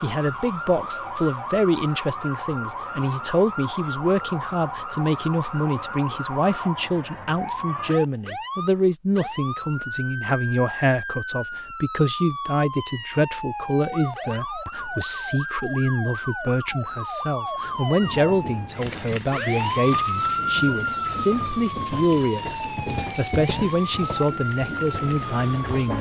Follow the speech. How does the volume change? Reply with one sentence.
The loudness of the speech stays about the same.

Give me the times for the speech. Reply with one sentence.
The speech can be heard from 0.0 to 25.9 s.